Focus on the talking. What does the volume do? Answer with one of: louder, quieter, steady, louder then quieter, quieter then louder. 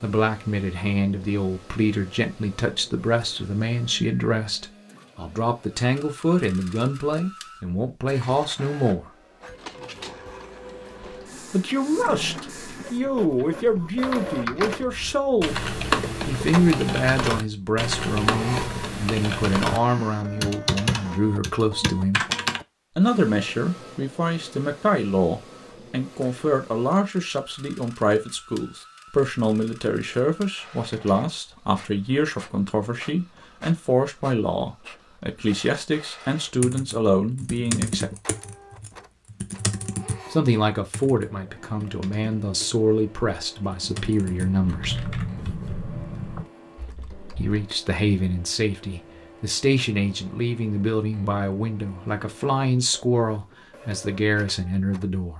steady.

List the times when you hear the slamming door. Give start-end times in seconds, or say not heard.
not heard.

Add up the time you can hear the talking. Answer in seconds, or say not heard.
47 s.